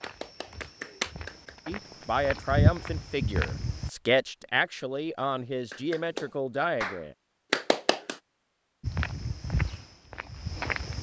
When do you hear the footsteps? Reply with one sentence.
You can hear the footsteps from 0.0 to 3.9 s and from 8.8 to 10.9 s.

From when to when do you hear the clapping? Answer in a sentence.
You can hear the clapping from 0.0 to 1.6 s and from 5.7 to 8.2 s.